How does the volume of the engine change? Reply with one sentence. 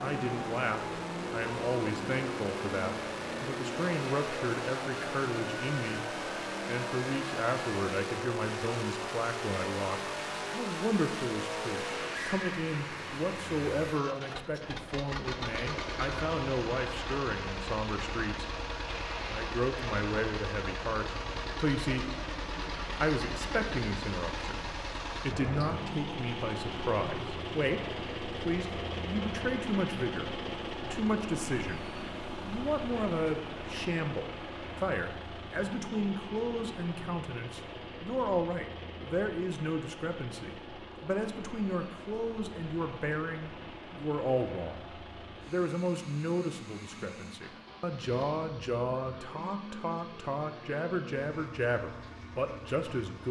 The loudness of the engine goes down.